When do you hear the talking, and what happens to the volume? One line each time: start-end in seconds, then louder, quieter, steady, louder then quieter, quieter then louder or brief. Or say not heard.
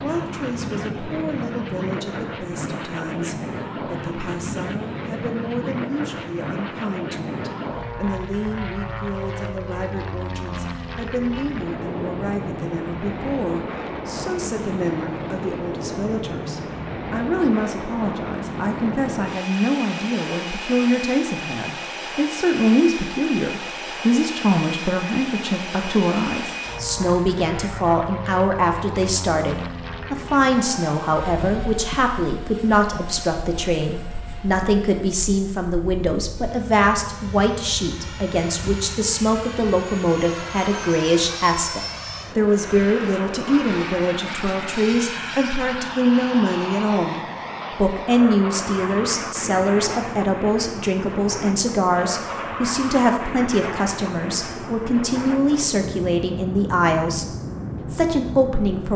0.0-57.2 louder
57.9-58.9 brief.